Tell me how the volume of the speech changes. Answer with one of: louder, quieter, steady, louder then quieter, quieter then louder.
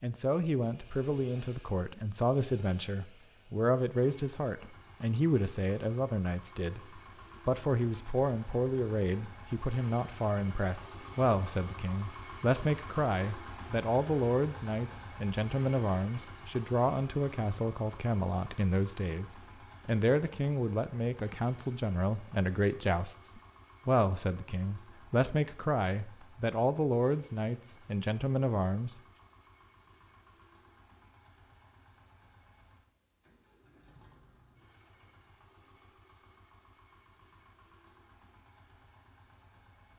steady.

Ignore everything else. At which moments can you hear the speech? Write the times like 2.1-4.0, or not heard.
0.0-29.0.